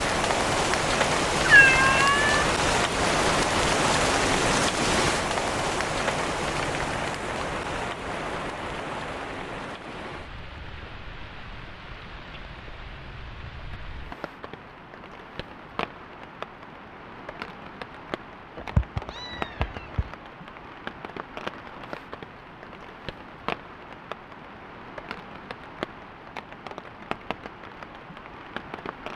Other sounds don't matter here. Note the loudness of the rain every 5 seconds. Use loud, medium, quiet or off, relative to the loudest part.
loud, medium, quiet, quiet, quiet, quiet.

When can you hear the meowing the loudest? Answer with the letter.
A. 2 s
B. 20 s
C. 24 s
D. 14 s
A.